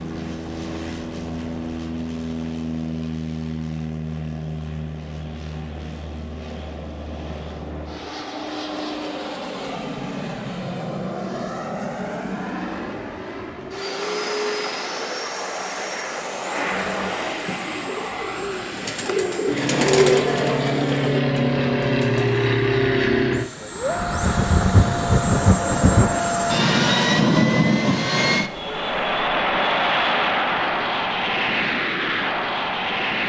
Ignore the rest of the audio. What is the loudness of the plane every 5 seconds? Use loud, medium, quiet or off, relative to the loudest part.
medium, quiet, medium, medium, loud, loud, loud.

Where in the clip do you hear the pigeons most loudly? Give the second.
20 s.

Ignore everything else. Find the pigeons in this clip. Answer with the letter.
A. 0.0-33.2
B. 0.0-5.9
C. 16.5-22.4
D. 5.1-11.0
C.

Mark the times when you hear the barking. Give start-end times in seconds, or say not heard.
not heard.